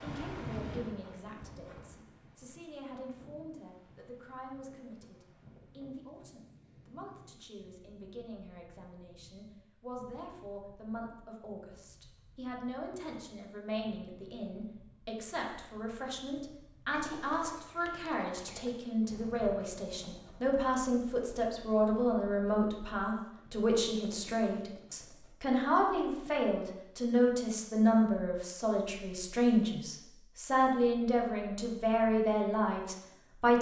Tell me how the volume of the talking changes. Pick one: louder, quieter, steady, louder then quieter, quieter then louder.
louder.